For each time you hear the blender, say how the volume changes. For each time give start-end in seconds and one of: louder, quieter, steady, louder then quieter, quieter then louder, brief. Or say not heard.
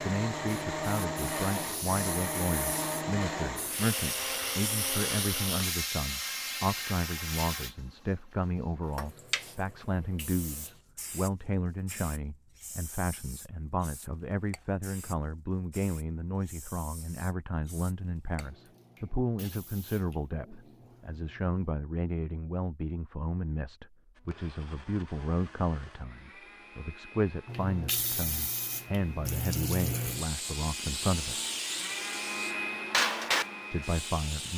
0.0-5.8 steady
24.1-34.5 louder.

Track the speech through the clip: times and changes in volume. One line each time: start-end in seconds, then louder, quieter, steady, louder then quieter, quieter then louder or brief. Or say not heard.
0.0-31.4 steady
33.7-34.5 brief.